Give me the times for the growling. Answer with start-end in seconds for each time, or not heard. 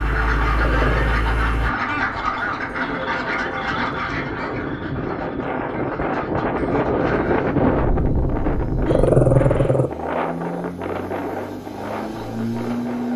0.6-1.2, 8.8-9.9.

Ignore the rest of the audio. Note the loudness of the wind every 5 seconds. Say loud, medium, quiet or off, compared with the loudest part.
medium, loud, medium.